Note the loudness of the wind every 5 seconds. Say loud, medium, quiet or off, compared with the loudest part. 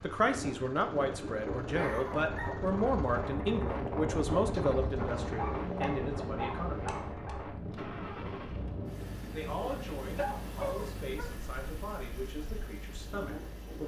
loud, loud, medium.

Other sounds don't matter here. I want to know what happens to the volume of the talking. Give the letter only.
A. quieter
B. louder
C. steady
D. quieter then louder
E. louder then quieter
A.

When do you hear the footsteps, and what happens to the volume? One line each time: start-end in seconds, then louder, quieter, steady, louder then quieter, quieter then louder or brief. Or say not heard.
not heard.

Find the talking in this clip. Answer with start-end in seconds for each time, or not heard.
0.0-6.9, 9.3-13.8.